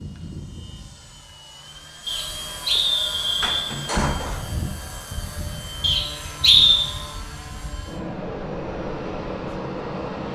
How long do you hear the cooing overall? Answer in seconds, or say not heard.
not heard.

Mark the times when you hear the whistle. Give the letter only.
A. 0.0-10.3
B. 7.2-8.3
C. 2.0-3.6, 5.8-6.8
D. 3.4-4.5
C.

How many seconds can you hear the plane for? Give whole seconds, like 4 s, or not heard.
10 s.